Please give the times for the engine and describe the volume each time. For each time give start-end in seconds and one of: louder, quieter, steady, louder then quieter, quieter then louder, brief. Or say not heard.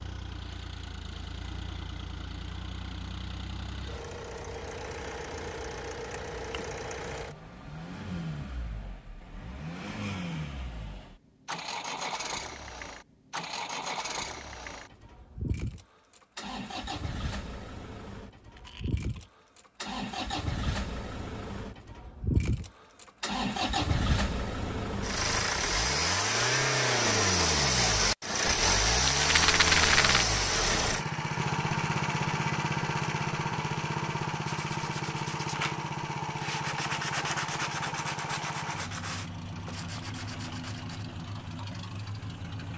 0.0-42.7 louder then quieter.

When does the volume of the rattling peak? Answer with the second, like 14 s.
30 s.